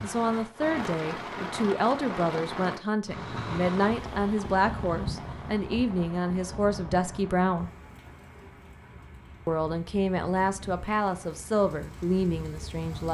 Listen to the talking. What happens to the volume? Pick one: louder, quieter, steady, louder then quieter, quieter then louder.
steady.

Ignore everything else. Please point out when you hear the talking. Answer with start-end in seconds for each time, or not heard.
0.0-7.7, 9.4-13.0.